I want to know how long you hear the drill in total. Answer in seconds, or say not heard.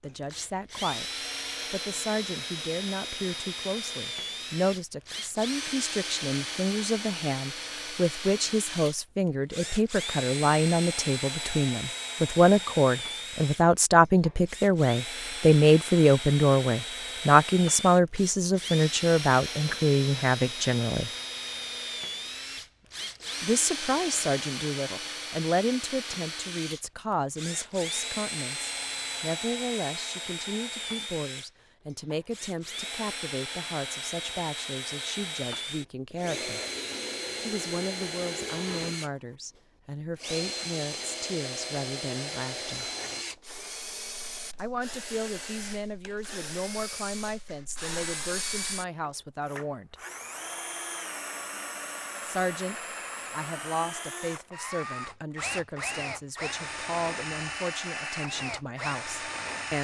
60 s.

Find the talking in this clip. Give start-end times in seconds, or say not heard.
0.0-1.1, 1.7-21.1, 23.4-36.6, 37.4-42.9, 44.5-50.0, 52.2-59.7.